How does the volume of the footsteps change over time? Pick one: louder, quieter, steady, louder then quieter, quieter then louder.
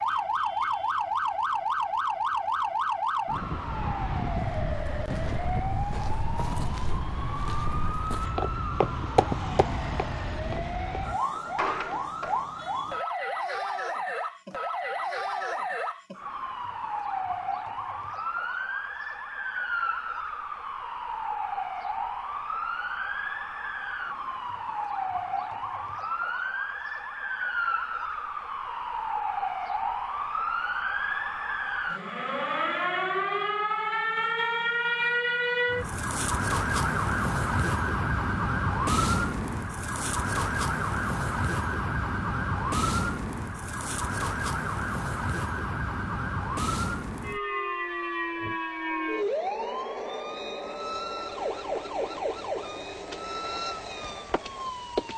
louder then quieter.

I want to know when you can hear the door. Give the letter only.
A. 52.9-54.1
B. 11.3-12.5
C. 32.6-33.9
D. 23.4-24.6
B.